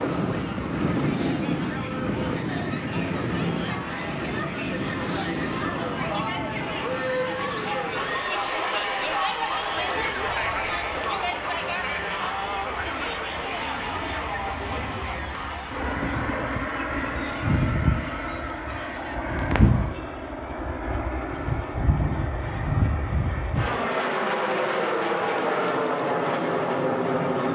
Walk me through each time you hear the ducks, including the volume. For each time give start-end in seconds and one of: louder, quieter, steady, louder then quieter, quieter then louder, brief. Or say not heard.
not heard.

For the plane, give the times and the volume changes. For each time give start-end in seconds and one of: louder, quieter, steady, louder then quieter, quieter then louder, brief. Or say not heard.
0.0-27.5 quieter then louder.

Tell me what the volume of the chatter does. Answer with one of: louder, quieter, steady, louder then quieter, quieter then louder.
louder then quieter.